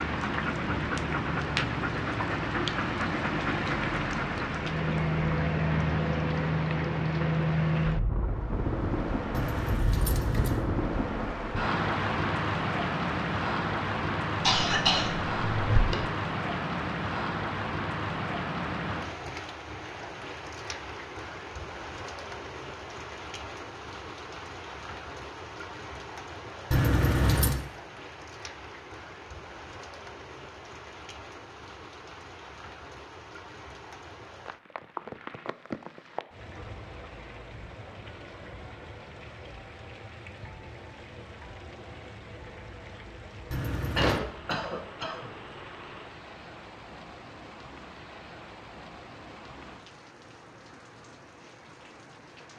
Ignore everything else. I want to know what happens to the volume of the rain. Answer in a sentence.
The loudness of the rain goes down.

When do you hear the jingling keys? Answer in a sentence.
You can hear the jingling keys from 9.3 to 10.7 s, from 26.7 to 27.6 s and from 43.5 to 44.2 s.